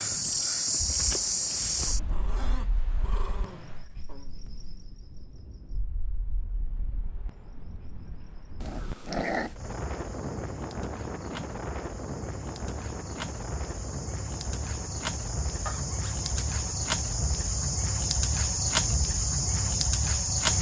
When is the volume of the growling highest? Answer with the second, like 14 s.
9 s.